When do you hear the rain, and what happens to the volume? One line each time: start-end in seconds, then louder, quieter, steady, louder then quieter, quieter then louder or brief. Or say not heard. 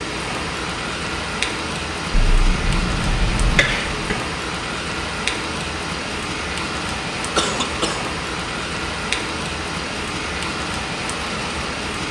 0.0-12.0 steady.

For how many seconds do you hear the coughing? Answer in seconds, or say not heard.
3 s.